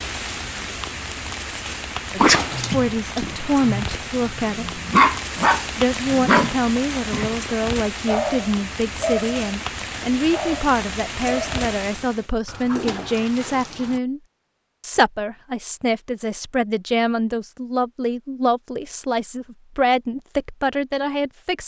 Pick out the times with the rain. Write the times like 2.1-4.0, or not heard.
0.0-12.3.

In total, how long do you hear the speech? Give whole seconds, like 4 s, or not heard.
18 s.